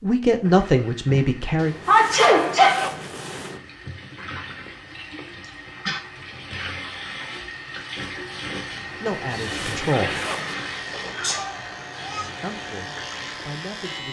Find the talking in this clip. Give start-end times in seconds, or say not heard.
0.0-1.8, 9.0-10.2, 12.4-14.0.